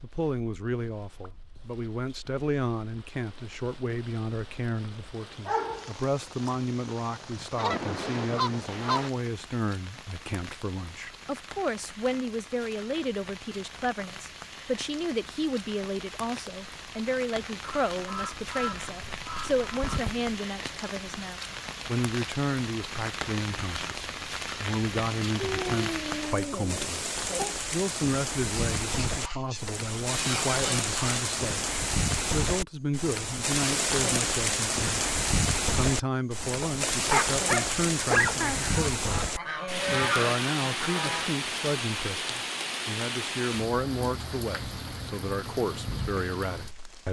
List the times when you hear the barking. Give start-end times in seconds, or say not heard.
5.5-6.7, 25.4-27.6, 36.6-38.4.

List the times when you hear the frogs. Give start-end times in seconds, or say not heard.
not heard.